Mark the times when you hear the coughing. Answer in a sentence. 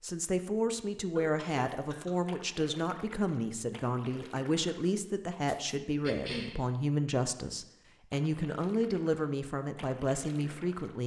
You can hear the coughing from 1.1 to 2.1 s and from 6.0 to 6.5 s.